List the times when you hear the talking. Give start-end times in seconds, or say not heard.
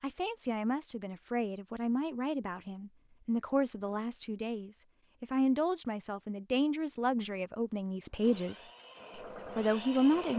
0.0-8.7, 9.6-10.3.